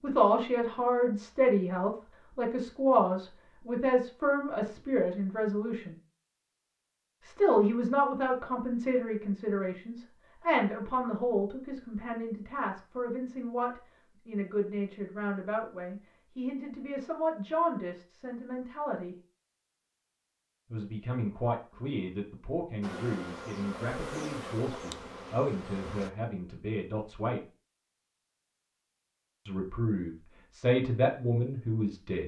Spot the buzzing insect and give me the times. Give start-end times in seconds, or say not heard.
22.8-26.1.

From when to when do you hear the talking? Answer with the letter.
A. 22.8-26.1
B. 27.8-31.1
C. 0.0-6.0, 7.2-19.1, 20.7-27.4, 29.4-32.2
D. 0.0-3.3
C.